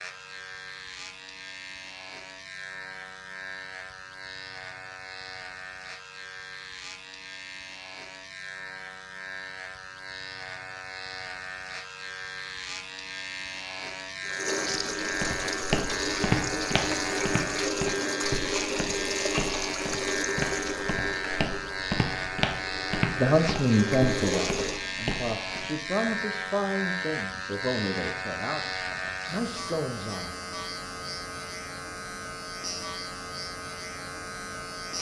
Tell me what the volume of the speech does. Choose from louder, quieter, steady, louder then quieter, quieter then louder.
quieter.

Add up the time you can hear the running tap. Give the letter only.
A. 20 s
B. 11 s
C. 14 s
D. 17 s
B.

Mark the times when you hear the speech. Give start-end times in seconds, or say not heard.
23.1-30.4.